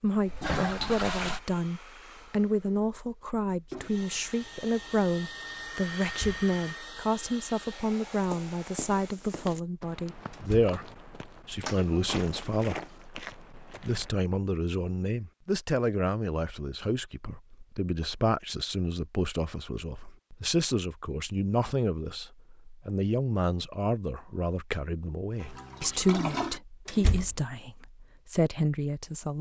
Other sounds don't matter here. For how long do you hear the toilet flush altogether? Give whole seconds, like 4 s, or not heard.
4 s.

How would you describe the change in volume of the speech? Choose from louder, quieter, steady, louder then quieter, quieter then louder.
steady.